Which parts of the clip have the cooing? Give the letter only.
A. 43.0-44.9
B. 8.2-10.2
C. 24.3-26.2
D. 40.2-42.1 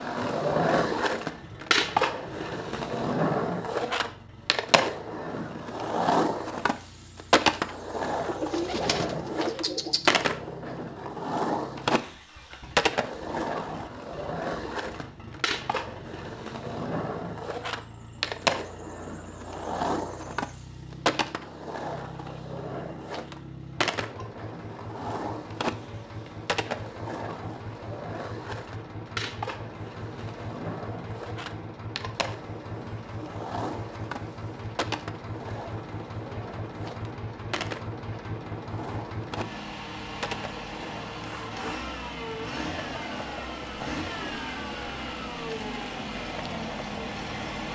B.